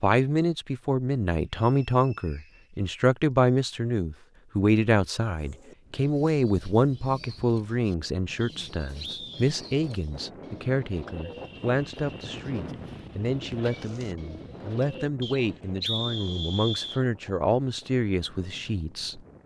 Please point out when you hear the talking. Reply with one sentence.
The talking can be heard from 0.0 to 19.2 s.